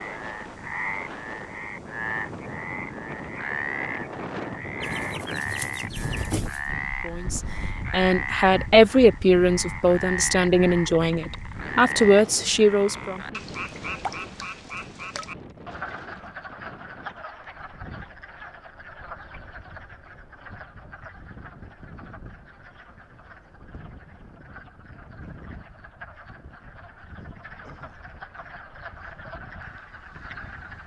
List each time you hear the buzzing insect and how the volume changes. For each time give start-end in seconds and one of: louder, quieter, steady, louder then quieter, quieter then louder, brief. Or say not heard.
not heard.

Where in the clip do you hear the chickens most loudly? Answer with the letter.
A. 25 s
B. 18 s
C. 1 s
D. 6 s
D.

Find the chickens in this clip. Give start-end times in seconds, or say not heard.
4.8-6.7.